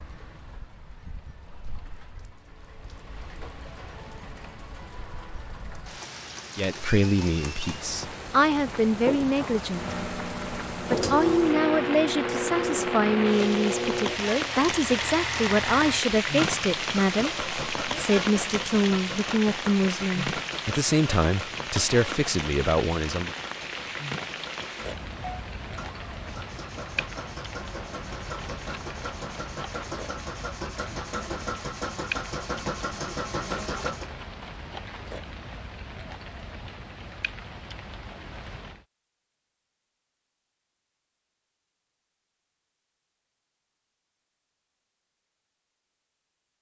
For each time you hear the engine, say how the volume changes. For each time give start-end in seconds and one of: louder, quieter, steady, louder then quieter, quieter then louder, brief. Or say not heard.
9.7-34.1 quieter then louder.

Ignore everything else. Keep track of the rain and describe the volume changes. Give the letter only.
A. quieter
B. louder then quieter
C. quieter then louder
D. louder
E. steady
B.